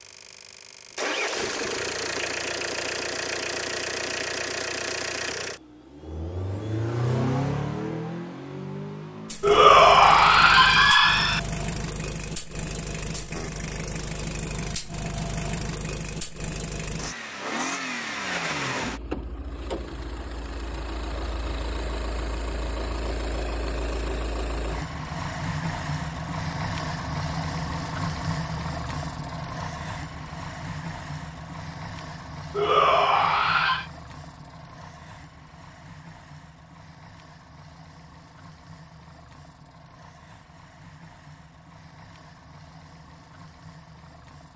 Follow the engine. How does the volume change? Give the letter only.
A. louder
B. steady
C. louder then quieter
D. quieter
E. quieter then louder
D.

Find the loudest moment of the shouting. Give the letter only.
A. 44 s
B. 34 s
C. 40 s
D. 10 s
D.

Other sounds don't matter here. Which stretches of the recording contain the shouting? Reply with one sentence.
The shouting can be heard from 9.4 to 11.4 s and from 32.5 to 33.9 s.